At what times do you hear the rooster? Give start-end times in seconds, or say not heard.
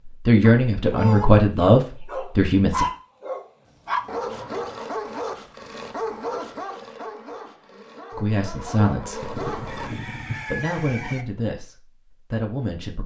9.2-11.2.